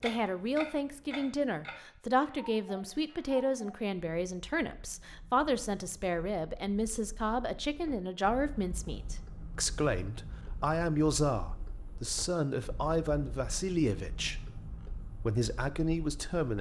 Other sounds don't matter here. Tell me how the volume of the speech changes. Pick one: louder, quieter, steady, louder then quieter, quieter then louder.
steady.